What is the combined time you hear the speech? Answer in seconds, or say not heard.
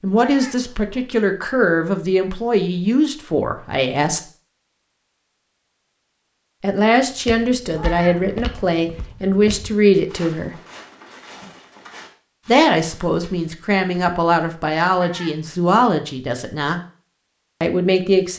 13 s.